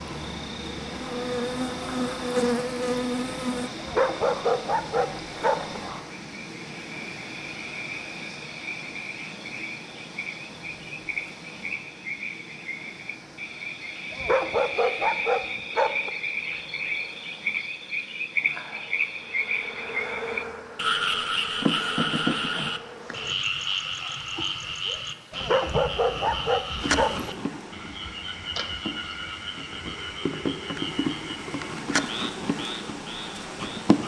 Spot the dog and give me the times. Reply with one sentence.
The dog can be heard from 3.8 to 5.8 s, from 14.1 to 16.1 s and from 25.3 to 27.3 s.